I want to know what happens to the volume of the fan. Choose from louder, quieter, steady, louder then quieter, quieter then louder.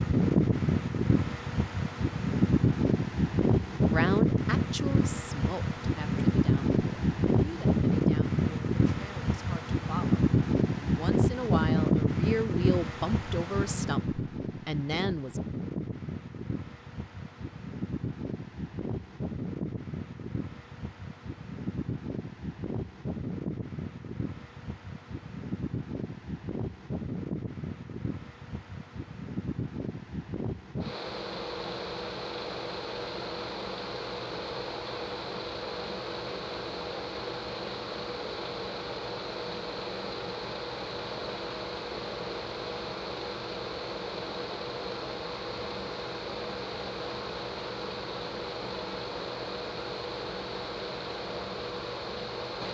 quieter.